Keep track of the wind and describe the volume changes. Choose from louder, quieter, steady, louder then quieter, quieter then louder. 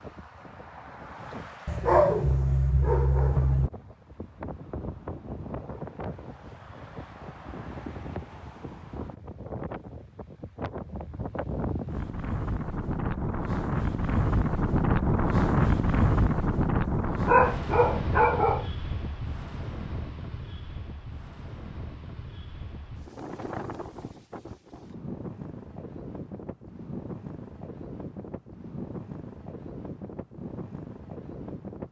louder then quieter.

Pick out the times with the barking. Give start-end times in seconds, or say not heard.
1.6-3.7, 16.9-18.7.